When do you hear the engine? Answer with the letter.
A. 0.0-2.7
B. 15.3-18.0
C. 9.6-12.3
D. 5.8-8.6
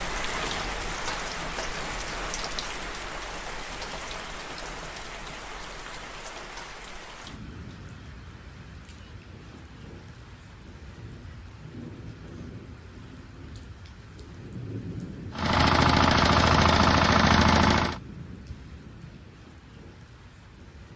B.